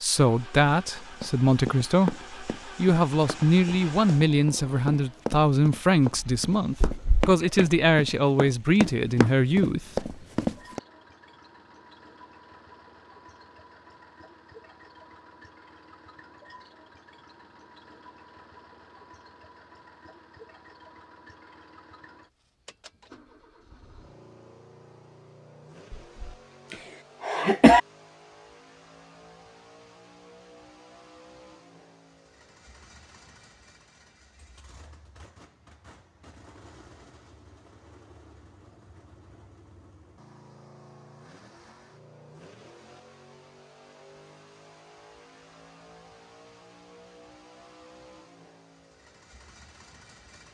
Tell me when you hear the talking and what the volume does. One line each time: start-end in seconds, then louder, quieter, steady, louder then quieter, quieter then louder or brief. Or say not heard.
0.0-10.1 steady.